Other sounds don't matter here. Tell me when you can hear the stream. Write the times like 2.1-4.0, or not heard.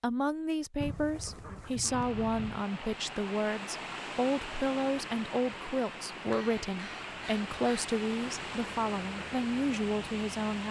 1.9-10.6.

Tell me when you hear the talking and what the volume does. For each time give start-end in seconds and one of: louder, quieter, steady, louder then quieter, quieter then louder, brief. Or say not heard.
0.0-10.6 steady.